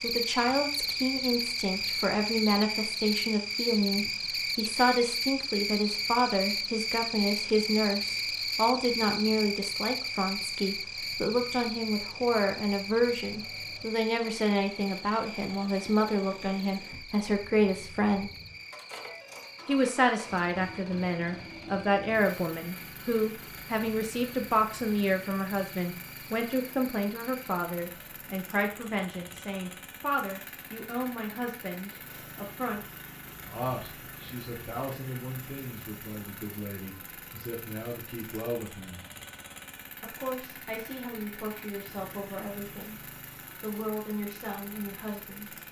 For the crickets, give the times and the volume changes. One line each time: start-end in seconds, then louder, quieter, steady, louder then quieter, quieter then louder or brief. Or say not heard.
0.0-27.6 quieter.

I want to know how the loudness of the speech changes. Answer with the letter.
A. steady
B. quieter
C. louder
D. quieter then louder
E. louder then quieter
B.